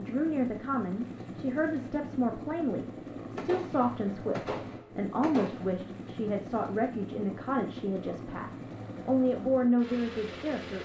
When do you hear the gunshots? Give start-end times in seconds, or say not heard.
3.4-5.8.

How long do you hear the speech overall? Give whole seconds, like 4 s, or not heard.
11 s.